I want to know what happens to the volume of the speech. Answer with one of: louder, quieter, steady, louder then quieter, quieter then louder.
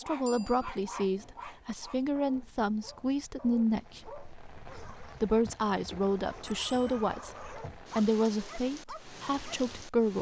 steady.